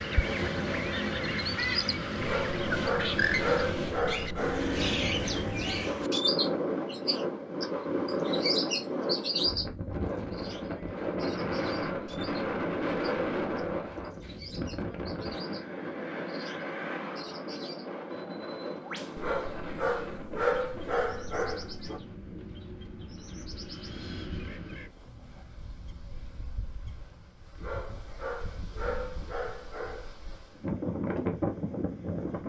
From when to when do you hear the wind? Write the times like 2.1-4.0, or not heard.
0.0-32.4.